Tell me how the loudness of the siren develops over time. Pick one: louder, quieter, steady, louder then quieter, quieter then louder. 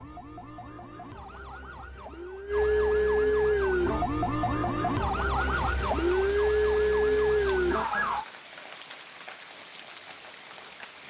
louder.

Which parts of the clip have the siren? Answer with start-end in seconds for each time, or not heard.
0.0-8.2.